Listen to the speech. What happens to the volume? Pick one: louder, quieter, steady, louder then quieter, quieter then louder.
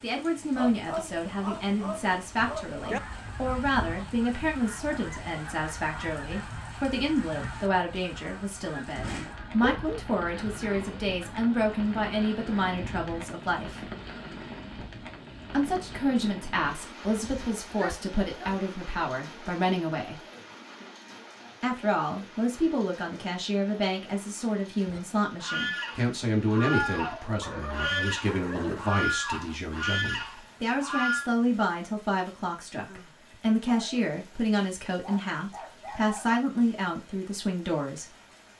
steady.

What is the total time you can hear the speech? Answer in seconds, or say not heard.
35 s.